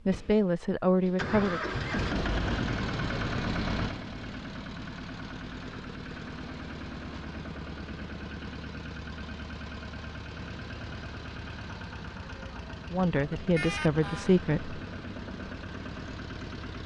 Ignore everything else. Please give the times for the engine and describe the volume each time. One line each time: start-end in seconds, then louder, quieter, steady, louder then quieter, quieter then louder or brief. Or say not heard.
0.0-16.8 quieter.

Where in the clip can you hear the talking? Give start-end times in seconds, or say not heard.
0.1-1.7, 12.9-14.8.